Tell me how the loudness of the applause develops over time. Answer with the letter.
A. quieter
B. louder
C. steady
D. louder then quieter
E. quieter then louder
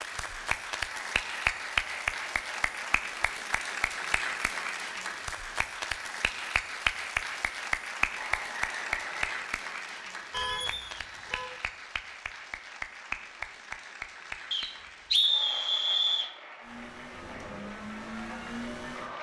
A.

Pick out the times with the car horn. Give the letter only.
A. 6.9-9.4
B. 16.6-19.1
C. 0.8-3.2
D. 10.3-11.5
D.